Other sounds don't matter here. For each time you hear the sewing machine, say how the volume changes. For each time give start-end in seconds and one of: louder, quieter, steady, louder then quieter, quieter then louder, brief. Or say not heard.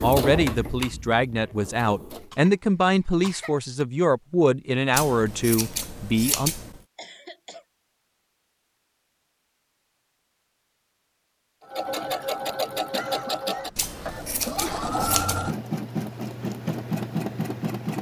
0.0-2.3 brief
11.6-17.9 steady.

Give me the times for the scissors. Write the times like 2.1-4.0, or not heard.
4.9-6.8, 13.8-15.4.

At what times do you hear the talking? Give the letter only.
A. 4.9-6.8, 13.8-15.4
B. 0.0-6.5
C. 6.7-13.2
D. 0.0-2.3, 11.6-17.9
B.